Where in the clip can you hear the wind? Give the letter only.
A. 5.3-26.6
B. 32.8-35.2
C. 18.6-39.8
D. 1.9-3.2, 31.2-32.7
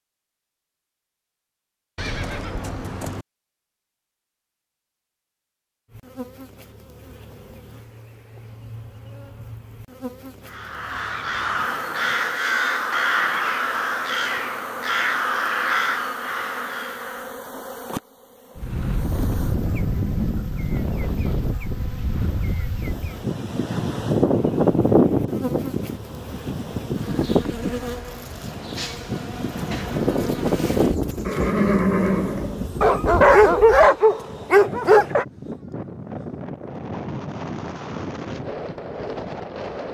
C.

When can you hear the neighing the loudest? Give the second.
32 s.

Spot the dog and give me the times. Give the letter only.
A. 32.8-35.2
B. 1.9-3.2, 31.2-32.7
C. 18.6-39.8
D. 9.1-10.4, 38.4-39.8
A.